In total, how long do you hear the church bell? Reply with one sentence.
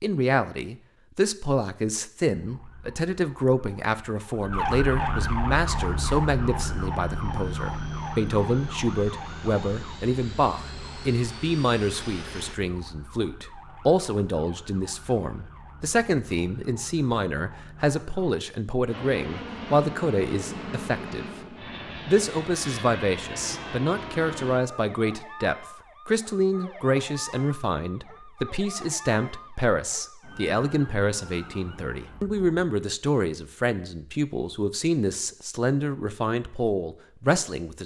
You can't hear the church bell here.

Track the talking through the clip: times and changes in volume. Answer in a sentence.
The talking can be heard from 0.0 to 21.2 s, at a steady volume; and from 22.1 to 37.8 s, at a steady volume.